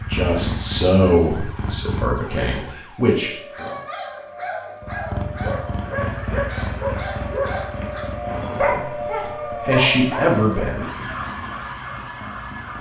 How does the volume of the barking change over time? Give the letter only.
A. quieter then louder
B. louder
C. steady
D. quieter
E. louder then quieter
B.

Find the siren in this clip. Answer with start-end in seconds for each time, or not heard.
0.0-12.7.